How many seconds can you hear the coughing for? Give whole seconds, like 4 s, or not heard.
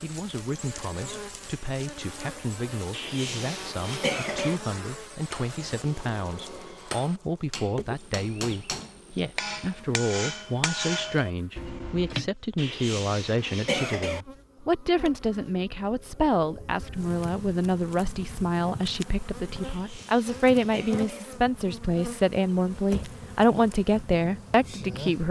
5 s.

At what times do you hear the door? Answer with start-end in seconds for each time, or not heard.
22.5-23.2.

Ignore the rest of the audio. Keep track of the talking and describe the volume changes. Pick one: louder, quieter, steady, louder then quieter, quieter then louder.
louder.